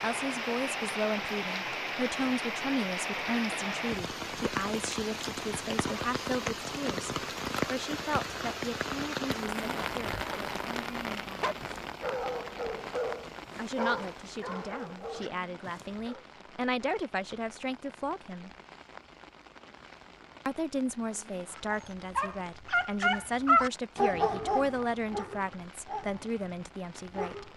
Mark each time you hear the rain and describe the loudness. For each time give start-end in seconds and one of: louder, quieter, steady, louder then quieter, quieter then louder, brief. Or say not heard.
0.0-27.5 quieter.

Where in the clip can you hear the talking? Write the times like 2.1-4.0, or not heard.
0.0-11.5, 13.6-18.5, 20.4-27.5.